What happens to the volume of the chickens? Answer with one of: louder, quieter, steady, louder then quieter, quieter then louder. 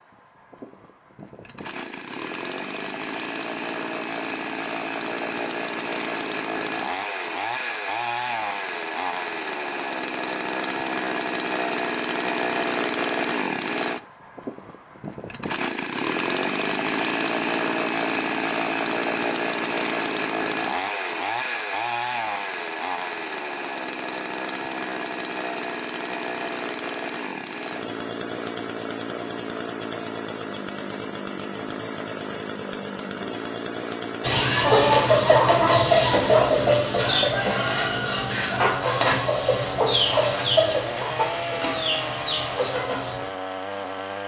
quieter.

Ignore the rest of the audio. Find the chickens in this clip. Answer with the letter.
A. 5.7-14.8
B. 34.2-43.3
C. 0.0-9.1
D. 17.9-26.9
B.